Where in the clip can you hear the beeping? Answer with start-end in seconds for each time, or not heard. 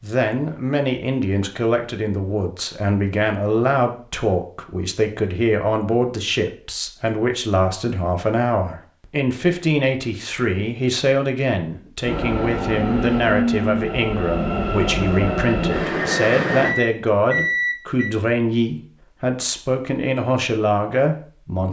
16.6-18.1.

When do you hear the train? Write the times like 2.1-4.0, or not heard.
12.0-16.8.